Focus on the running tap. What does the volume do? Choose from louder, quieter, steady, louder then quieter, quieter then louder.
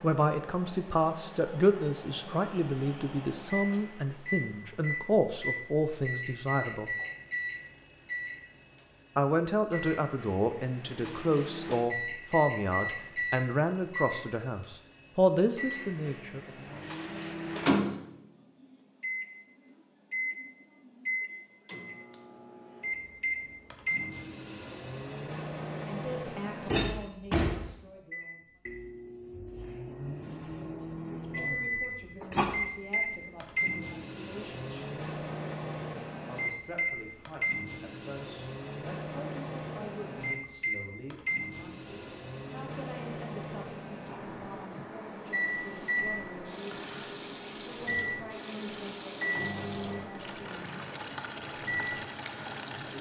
louder.